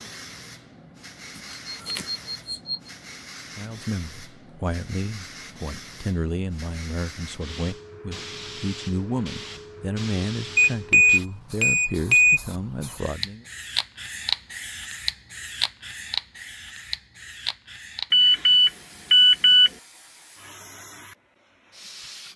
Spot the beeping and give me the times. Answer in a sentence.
The beeping can be heard from 1.6 to 2.8 s, from 10.6 to 12.4 s and from 18.1 to 19.7 s.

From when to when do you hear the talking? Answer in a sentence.
The talking can be heard from 3.5 to 13.4 s.